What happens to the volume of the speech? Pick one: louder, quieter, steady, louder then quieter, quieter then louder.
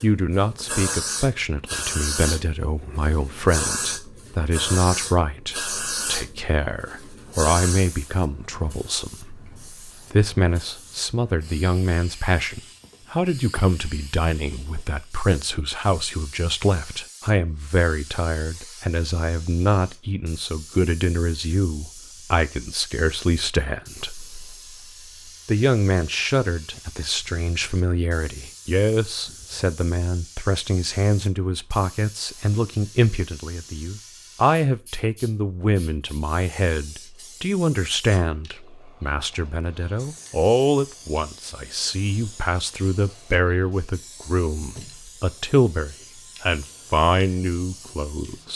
steady.